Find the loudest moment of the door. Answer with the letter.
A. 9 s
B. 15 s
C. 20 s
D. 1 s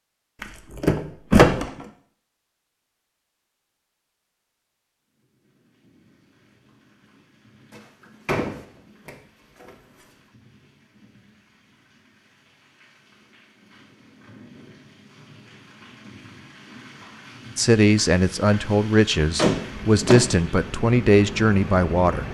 D.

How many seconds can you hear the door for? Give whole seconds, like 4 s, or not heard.
5 s.